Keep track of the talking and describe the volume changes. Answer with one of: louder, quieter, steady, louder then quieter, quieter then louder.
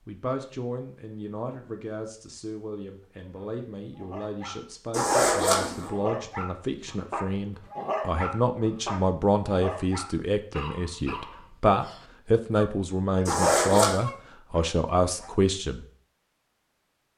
louder.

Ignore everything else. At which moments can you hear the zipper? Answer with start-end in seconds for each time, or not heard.
4.9-5.9, 13.2-13.9.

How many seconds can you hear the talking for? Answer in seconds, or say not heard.
16 s.